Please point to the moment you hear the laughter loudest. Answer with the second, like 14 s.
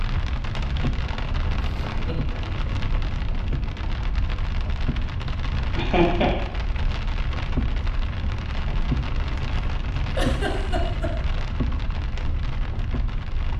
6 s.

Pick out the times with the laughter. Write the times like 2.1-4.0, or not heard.
1.6-2.5, 5.8-6.3, 10.2-11.1.